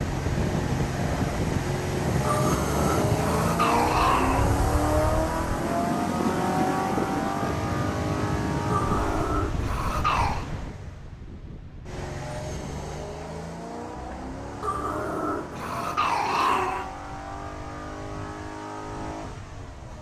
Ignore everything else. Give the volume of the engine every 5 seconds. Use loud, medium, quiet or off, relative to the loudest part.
loud, loud, medium, medium.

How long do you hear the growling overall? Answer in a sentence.
The growling can be heard for 6 seconds in total.